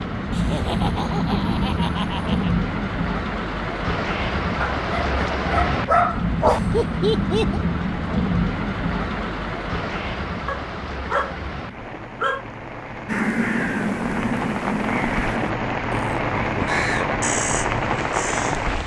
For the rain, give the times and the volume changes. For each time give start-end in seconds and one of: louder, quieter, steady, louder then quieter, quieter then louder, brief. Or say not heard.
0.0-18.8 quieter then louder.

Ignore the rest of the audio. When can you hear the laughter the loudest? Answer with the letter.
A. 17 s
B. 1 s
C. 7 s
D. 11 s
C.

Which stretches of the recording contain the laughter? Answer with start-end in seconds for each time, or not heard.
0.3-2.5, 6.5-7.6, 16.1-17.2.